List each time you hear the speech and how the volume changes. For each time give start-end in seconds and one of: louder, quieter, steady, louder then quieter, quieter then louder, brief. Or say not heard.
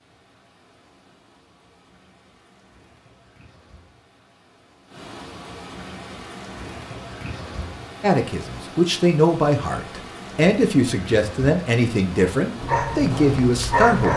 8.0-14.1 steady.